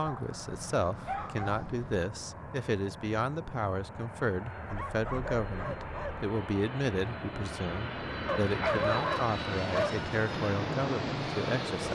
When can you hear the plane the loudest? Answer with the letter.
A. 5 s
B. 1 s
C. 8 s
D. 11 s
D.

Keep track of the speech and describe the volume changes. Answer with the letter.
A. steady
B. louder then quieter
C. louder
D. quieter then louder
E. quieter
A.